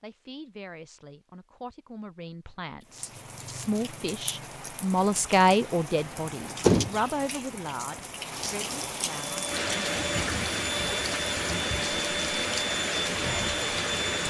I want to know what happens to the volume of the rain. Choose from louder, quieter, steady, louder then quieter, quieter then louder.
louder.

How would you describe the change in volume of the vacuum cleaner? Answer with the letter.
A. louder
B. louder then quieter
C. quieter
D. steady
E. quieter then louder
D.